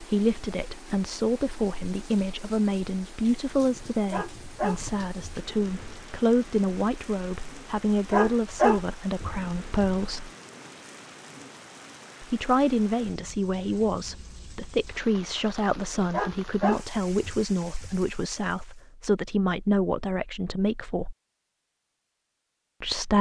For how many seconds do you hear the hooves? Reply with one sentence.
You can't hear the hooves here.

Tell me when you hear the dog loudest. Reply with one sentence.
The volume of the dog peaks at 9 seconds.